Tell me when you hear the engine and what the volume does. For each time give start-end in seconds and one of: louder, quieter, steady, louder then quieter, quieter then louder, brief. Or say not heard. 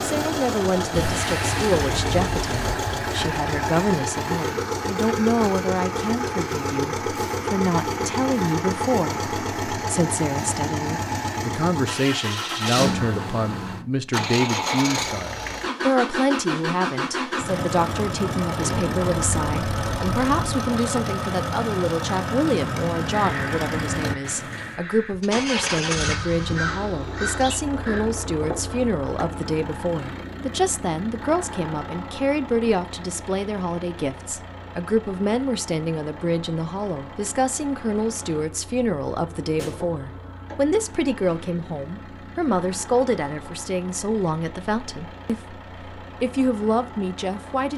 0.0-47.7 quieter.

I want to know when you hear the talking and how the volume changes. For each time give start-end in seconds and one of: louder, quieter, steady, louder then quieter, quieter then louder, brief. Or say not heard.
0.0-47.7 steady.